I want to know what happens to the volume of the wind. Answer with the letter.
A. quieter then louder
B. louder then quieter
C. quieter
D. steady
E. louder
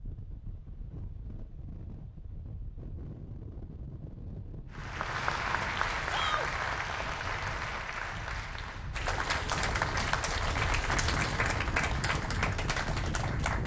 E.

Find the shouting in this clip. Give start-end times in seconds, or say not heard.
6.0-6.5.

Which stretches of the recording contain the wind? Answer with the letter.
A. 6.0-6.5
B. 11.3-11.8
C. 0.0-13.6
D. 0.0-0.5
C.